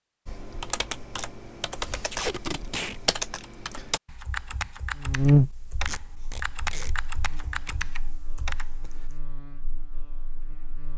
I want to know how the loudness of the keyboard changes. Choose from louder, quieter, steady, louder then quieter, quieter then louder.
steady.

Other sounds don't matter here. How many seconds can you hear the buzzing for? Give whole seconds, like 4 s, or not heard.
6 s.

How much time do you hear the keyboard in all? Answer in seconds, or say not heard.
9 s.